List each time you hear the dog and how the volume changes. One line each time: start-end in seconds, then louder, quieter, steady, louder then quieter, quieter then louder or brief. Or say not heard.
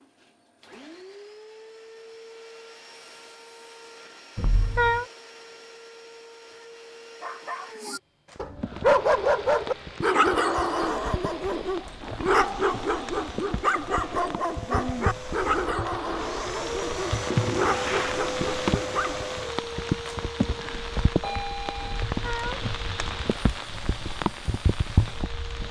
7.2-19.3 quieter.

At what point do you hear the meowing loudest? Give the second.
5 s.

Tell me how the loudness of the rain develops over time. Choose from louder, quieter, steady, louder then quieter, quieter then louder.
louder.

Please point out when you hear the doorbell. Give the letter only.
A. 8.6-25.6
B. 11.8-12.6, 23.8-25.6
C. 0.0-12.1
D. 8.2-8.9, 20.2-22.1
D.